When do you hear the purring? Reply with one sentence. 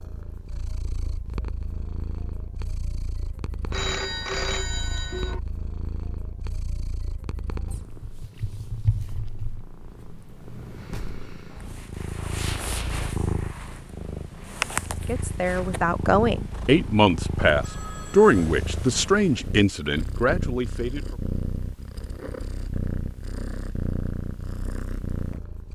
The purring can be heard from 0.0 to 25.7 s.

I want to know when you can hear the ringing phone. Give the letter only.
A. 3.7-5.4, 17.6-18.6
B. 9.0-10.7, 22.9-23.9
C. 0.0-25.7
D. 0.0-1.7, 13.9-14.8
A.